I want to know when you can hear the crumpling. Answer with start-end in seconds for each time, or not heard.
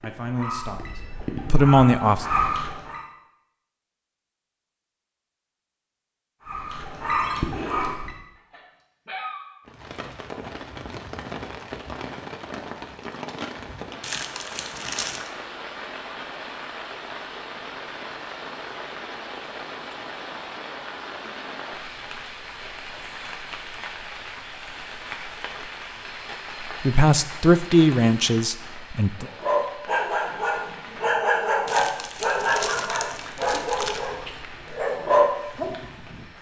14.0-15.3, 31.6-34.0.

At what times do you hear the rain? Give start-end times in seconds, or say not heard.
9.7-36.3.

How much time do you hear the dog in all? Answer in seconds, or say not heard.
13 s.